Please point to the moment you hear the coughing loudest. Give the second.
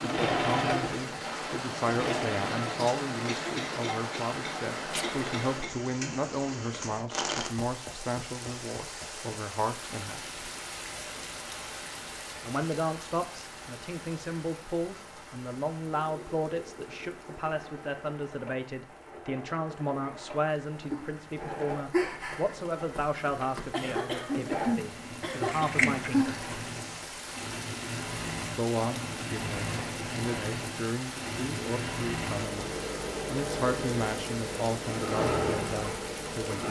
25 s.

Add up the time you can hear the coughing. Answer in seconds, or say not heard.
5 s.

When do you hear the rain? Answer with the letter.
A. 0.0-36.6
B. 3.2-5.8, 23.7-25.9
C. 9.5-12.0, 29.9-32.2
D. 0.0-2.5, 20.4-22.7
A.